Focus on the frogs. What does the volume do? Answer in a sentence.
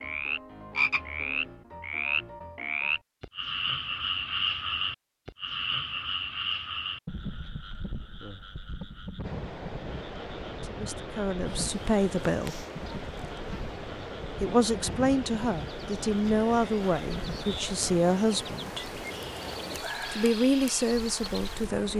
The volume of the frogs goes down.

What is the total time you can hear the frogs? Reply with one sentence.
The frogs can be heard for 18 seconds in total.